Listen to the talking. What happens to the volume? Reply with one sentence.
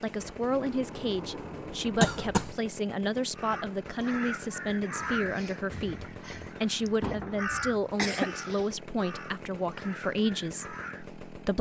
The loudness of the talking stays about the same.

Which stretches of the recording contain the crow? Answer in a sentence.
The crow can be heard from 3.4 to 11.1 s.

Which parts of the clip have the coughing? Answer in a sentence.
You can hear the coughing from 2.0 to 2.5 s and from 7.5 to 8.3 s.